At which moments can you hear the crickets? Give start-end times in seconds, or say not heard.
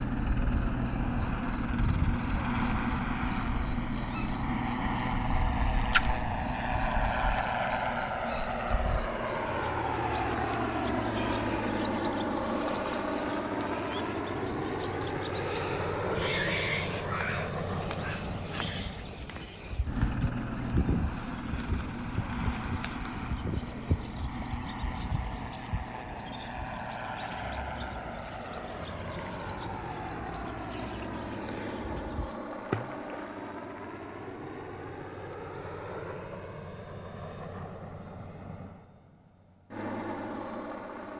0.0-32.4.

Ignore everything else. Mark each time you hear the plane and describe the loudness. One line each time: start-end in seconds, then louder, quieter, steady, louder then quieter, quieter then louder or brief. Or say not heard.
0.0-41.1 quieter.